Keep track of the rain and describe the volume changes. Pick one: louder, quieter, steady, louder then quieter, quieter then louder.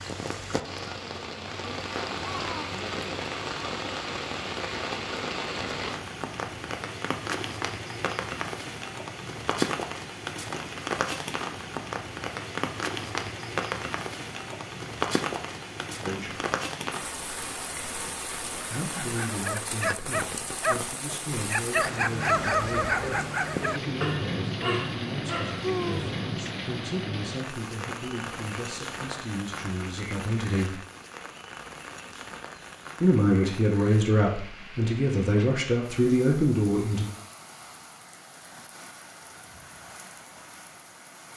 quieter.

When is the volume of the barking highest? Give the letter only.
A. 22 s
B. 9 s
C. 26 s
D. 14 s
A.